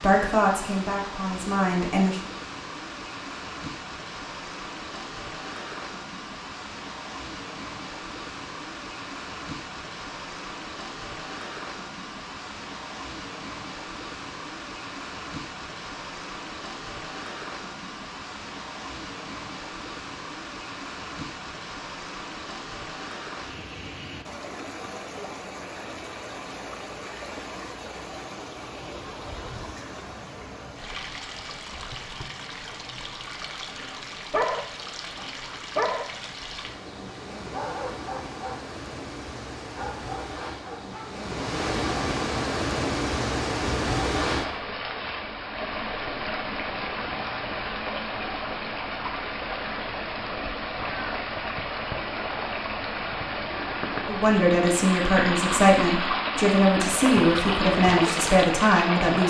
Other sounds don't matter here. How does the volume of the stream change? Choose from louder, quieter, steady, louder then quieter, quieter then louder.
louder.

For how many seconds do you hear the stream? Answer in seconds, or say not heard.
59 s.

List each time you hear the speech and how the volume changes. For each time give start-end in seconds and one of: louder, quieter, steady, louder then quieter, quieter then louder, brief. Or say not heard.
0.0-2.2 brief
54.0-59.2 steady.